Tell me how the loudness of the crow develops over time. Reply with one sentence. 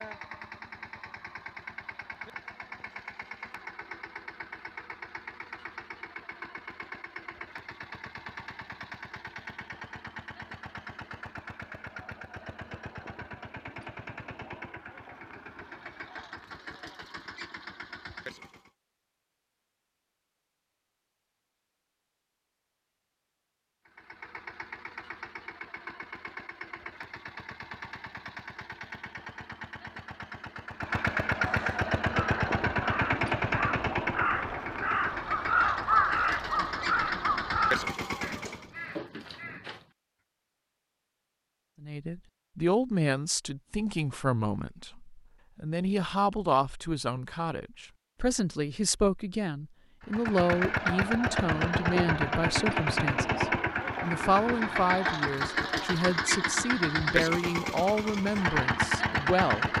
The loudness of the crow goes up, then down.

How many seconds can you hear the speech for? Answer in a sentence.
The speech can be heard for 18 seconds in total.